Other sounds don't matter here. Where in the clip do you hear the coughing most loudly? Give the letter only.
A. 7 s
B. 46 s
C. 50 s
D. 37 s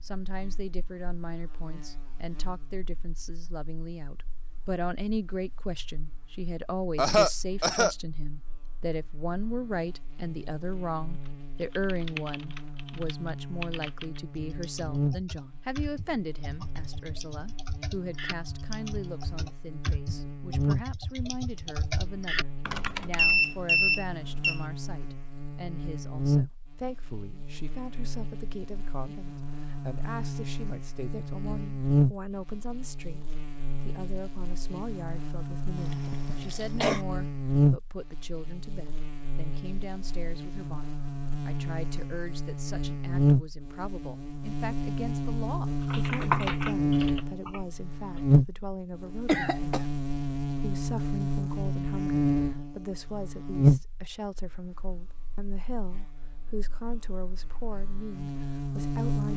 A.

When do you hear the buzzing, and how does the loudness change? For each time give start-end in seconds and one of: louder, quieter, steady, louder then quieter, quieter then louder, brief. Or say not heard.
0.0-59.3 louder.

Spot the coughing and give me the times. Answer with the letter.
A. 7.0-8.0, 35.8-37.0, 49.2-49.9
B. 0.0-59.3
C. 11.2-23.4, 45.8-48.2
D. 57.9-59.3
A.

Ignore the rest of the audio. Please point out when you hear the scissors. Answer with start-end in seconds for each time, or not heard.
not heard.